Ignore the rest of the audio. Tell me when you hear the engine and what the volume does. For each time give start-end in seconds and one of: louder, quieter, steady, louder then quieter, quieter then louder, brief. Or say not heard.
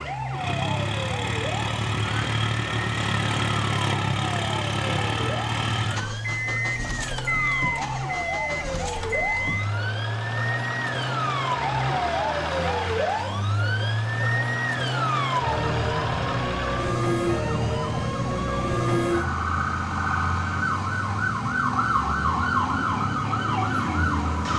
0.1-24.5 quieter.